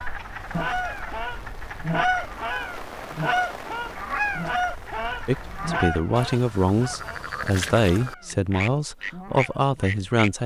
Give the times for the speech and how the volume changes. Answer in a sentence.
The speech can be heard from 5.2 to 10.4 s, at a steady volume.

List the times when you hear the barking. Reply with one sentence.
You can't hear the barking here.